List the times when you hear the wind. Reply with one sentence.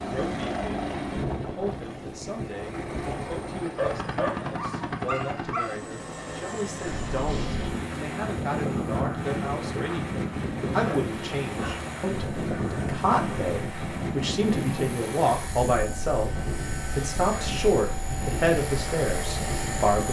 You can hear the wind from 6.8 to 19.9 s.